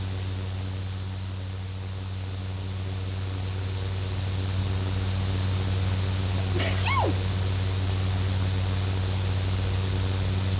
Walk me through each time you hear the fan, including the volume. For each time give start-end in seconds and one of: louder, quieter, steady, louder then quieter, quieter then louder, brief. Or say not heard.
0.0-10.5 louder.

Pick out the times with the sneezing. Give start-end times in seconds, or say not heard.
6.4-7.2.